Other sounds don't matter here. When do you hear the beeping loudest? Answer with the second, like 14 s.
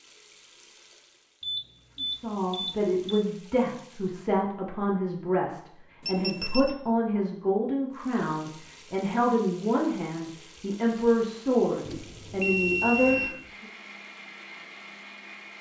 13 s.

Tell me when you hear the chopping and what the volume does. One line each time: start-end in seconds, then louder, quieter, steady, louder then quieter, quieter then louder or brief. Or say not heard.
not heard.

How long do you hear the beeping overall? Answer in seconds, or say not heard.
4 s.